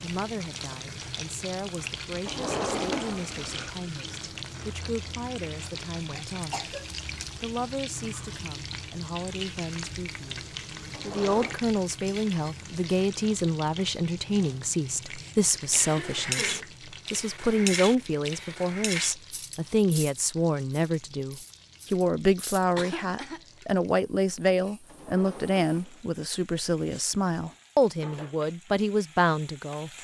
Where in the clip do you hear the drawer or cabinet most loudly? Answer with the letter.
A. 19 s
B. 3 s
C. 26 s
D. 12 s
B.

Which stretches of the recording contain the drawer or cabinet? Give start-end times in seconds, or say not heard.
2.2-3.7, 10.9-11.6, 24.9-26.1.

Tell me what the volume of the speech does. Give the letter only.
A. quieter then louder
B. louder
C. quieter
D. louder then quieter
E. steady
B.